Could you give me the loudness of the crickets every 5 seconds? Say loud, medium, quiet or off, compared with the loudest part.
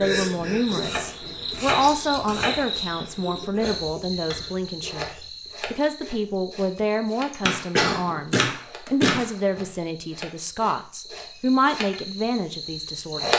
loud, medium, loud.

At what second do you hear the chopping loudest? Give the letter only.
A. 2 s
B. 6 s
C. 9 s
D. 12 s
C.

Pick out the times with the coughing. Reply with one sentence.
You can hear the coughing from 7.3 to 8.1 s.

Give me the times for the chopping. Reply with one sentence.
You can hear the chopping from 0.8 to 2.6 s and from 7.5 to 9.6 s.